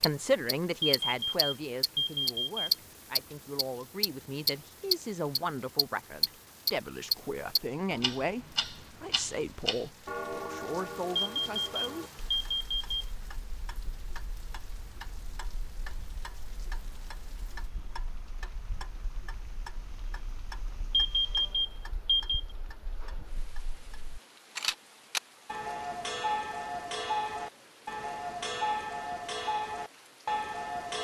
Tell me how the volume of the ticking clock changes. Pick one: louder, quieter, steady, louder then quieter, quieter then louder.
quieter then louder.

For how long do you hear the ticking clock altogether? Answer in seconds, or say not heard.
31 s.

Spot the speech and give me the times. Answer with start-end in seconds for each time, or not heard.
0.0-12.1.